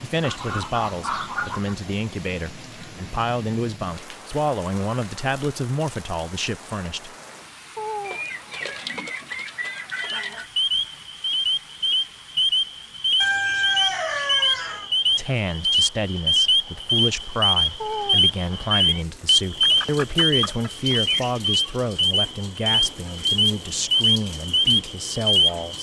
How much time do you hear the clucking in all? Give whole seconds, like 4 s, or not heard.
8 s.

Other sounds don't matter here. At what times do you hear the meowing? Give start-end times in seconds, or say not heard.
7.8-9.0, 17.8-19.1.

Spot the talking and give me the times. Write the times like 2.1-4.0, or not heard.
0.0-7.1, 15.2-25.7.